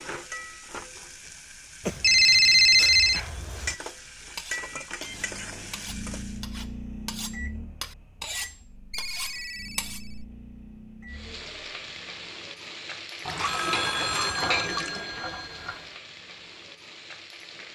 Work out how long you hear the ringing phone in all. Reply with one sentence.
The ringing phone can be heard for 6 seconds in total.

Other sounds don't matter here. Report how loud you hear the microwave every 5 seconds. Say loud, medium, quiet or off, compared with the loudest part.
off, loud, medium, off.